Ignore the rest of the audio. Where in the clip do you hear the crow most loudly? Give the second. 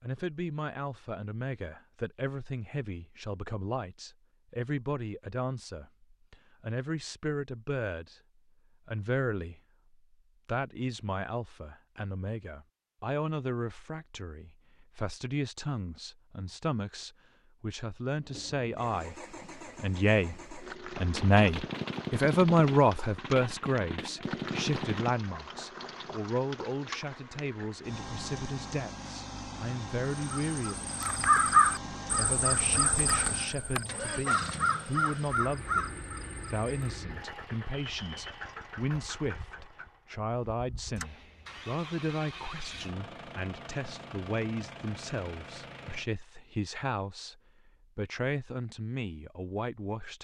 31 s.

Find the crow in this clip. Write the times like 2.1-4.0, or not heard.
30.2-36.9.